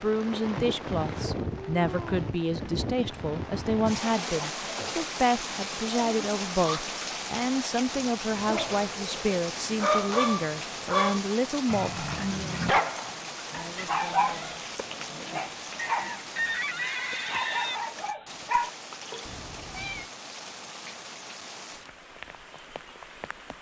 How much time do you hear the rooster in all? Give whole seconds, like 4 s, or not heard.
2 s.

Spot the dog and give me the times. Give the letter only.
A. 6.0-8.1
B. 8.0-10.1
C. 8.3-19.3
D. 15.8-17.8
C.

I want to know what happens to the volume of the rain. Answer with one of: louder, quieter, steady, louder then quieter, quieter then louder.
quieter.